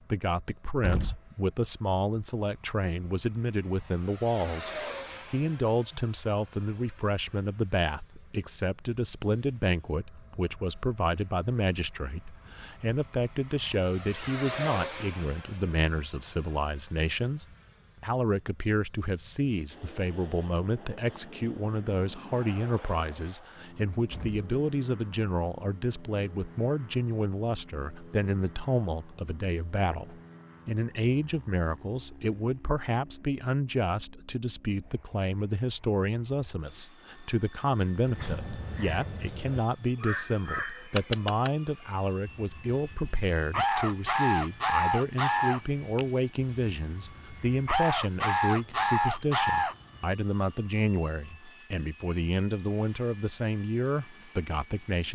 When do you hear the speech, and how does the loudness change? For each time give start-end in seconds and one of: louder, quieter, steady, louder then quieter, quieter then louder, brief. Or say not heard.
0.1-55.1 steady.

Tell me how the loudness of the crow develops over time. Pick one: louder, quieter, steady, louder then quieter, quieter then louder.
louder.